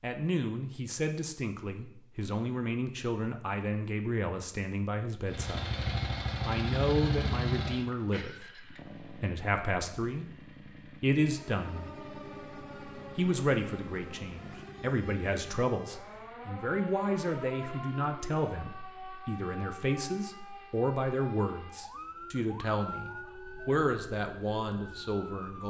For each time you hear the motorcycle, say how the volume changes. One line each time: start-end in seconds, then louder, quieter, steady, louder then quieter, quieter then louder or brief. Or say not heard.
5.2-15.7 quieter.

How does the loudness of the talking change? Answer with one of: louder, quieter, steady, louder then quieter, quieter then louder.
steady.